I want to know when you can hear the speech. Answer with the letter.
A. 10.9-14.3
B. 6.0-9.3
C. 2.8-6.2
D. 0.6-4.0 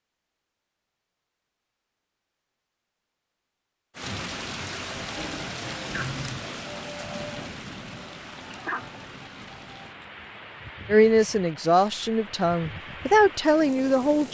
A.